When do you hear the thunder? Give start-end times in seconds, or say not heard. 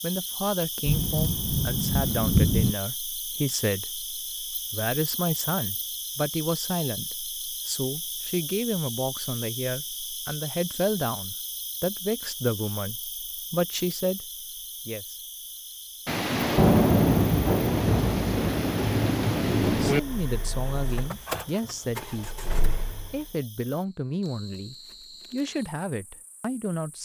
0.8-2.8, 16.1-20.0.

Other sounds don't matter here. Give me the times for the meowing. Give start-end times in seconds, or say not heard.
not heard.